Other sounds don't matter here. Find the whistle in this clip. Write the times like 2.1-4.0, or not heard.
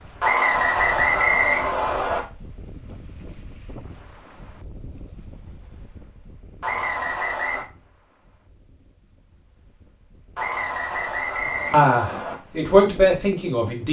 0.2-2.2, 6.6-7.7, 10.3-12.3.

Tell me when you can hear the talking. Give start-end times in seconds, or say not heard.
11.7-13.8.